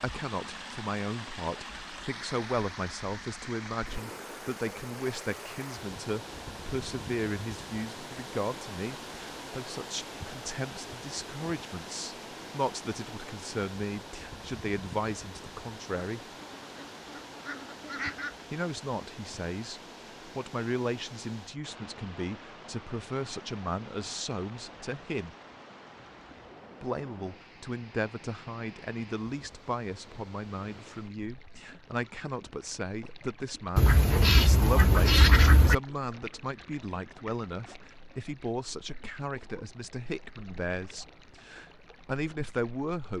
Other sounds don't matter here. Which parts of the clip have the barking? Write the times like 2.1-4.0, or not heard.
not heard.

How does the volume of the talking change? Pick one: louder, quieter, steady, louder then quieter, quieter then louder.
steady.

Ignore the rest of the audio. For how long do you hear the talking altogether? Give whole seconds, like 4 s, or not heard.
39 s.